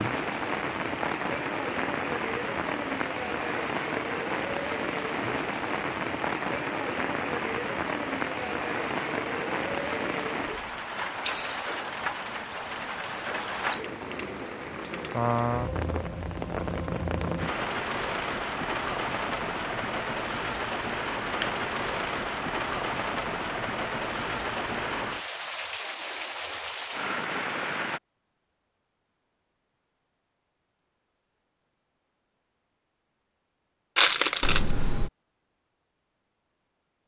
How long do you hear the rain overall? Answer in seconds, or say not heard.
28 s.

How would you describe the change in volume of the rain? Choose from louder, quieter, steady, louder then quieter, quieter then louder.
steady.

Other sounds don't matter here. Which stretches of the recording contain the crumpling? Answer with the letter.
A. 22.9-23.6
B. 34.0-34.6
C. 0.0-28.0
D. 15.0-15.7
B.